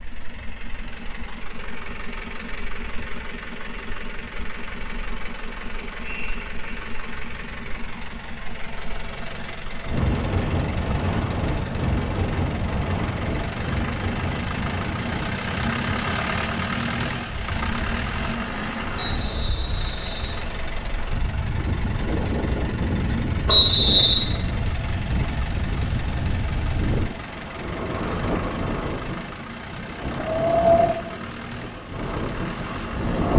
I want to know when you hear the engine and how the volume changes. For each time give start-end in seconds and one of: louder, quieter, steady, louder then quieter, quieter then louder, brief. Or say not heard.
0.0-33.3 louder then quieter.